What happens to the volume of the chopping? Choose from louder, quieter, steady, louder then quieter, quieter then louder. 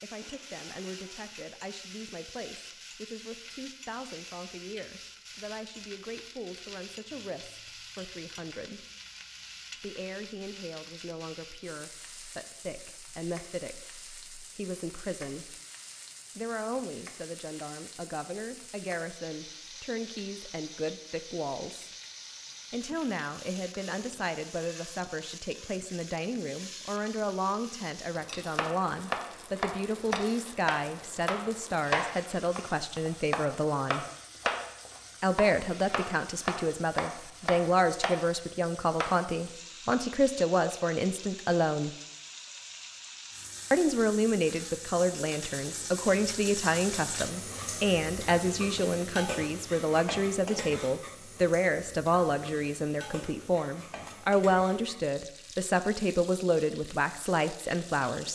steady.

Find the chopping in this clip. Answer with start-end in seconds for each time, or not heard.
28.6-39.2.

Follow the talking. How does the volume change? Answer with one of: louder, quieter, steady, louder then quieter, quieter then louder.
louder.